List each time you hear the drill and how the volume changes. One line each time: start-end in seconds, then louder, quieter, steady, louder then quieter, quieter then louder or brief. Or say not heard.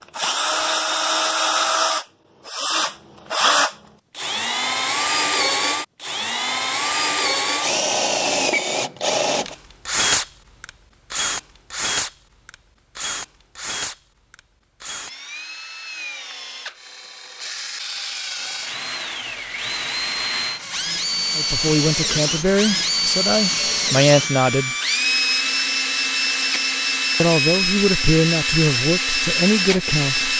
0.1-30.3 quieter then louder.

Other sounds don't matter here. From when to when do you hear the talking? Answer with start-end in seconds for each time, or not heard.
21.4-24.8, 27.2-30.3.